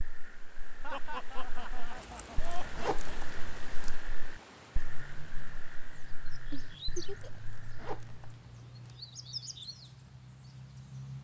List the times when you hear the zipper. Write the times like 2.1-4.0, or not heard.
1.9-4.0, 7.0-9.0.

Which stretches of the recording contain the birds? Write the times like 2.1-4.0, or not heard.
4.7-11.1.